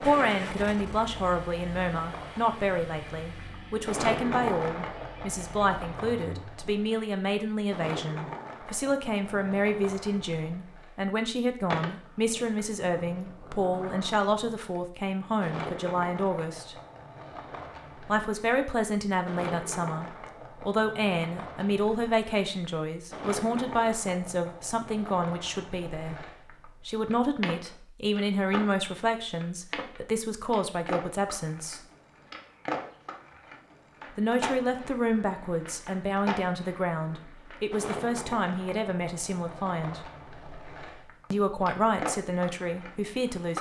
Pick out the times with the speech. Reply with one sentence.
You can hear the speech from 0.0 to 16.8 s, from 18.1 to 26.1 s, from 26.9 to 31.8 s, from 34.1 to 40.0 s and from 41.3 to 43.5 s.